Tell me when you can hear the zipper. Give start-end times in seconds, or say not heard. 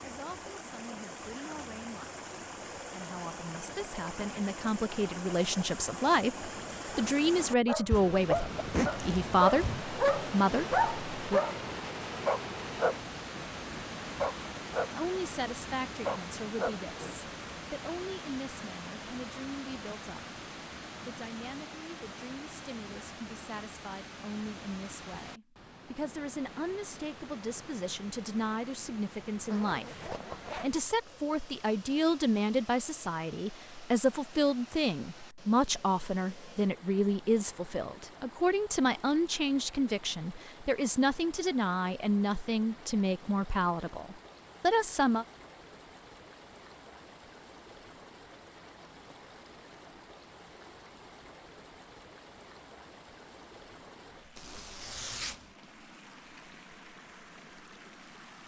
7.9-9.8, 29.4-30.6, 54.4-55.5.